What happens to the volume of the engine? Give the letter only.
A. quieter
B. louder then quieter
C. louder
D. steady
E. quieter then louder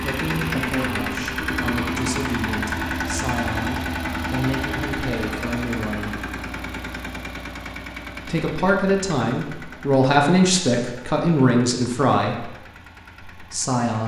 A.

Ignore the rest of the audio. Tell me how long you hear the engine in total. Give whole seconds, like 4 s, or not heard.
14 s.